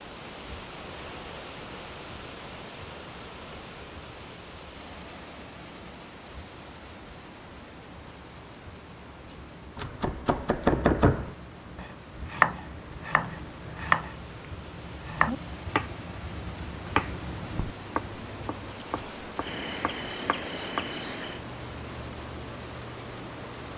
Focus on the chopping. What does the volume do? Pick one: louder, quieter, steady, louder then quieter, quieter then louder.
quieter.